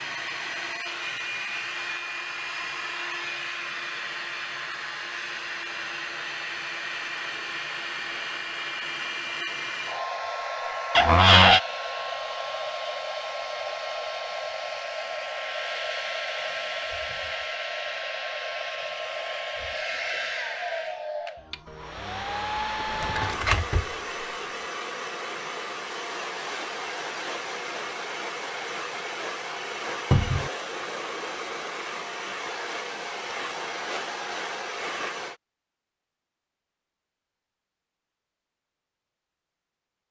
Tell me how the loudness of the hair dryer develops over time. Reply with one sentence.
The volume of the hair dryer stays about the same.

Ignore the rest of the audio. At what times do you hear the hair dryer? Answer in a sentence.
The hair dryer can be heard from 0.0 to 35.4 s.